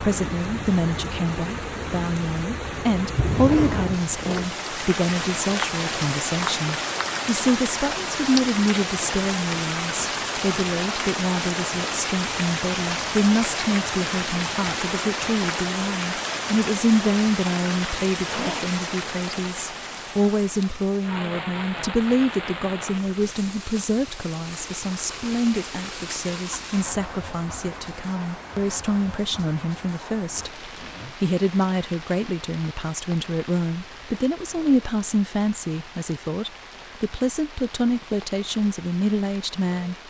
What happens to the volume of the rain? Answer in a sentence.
The loudness of the rain goes down.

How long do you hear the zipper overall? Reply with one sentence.
You can hear the zipper for 3 seconds altogether.